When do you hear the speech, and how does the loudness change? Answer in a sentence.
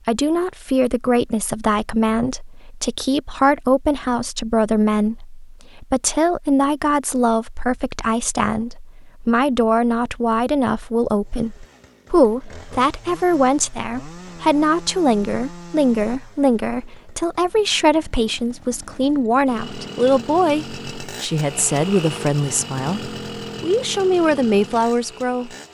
You can hear the speech from 0.1 to 25.5 s, at a steady volume.